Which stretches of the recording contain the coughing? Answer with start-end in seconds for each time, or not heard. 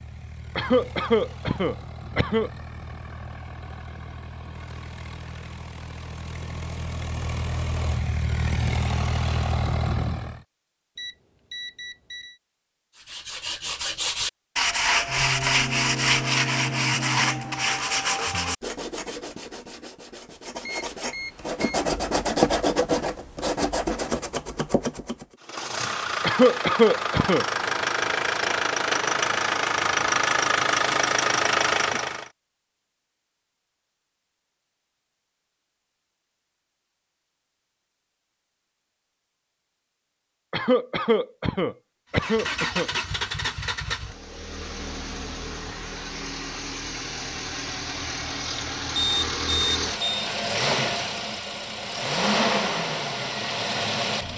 0.6-2.5, 26.2-27.4, 40.5-42.9.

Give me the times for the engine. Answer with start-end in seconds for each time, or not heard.
0.0-10.4, 25.4-32.3, 42.1-54.3.